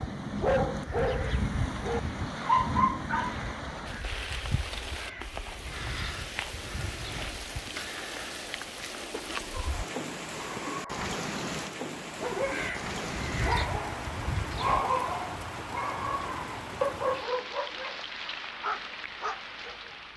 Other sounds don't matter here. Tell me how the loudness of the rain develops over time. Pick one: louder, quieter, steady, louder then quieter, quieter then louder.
steady.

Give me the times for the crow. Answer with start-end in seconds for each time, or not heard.
0.1-7.8, 12.3-14.8.